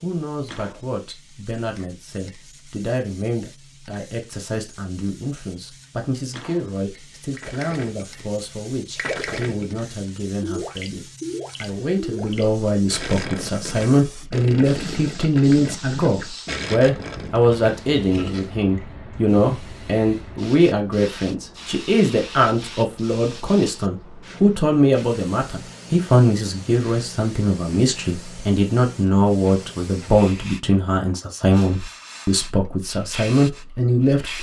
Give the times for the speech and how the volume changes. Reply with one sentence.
The speech can be heard from 0.0 to 34.3 s, getting louder.